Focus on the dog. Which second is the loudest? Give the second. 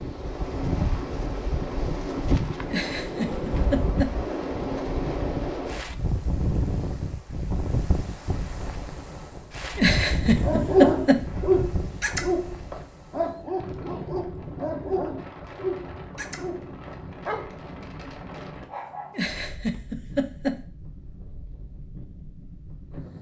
11 s.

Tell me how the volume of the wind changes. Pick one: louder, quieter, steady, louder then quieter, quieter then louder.
quieter.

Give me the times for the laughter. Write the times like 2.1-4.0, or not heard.
2.6-4.2, 9.8-11.2, 19.1-20.6.